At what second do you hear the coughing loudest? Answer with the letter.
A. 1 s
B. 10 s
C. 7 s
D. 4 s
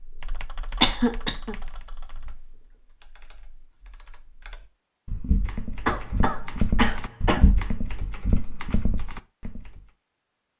A.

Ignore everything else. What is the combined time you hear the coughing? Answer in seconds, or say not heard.
2 s.